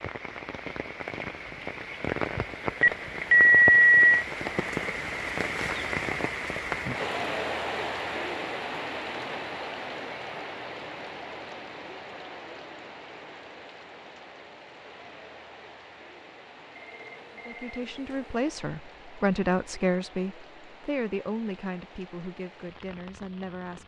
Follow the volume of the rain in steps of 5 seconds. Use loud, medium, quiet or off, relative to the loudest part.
loud, loud, medium, quiet, quiet.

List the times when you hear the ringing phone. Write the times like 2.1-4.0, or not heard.
2.8-4.2, 16.8-18.4.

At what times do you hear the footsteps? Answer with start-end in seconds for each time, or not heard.
not heard.